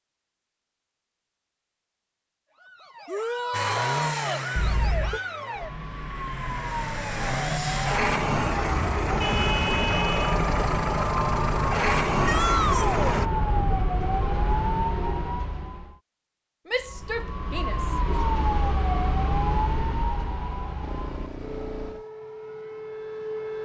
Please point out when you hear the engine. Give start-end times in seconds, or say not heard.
3.5-13.3.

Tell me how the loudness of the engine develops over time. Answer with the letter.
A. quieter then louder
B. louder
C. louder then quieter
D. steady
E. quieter
B.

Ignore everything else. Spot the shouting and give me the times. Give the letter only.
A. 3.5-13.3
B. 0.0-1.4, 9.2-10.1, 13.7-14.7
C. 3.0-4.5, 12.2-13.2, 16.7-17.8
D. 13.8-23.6
C.